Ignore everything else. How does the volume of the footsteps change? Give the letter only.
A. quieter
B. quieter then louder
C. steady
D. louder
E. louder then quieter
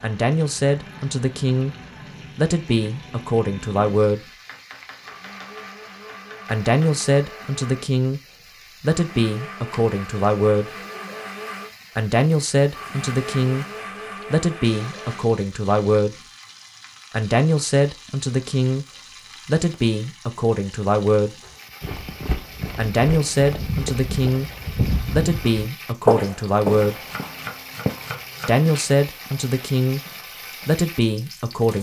E.